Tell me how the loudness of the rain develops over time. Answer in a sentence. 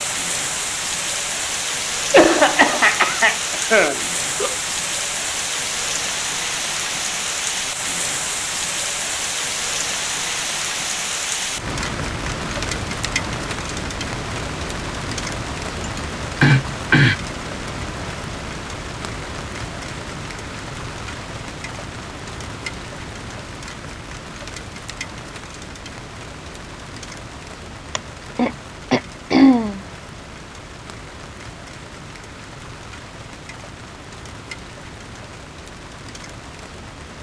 The volume of the rain goes down.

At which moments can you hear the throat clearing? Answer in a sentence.
You can hear the throat clearing from 2.1 to 4.5 s, from 15.8 to 17.1 s and from 27.9 to 29.8 s.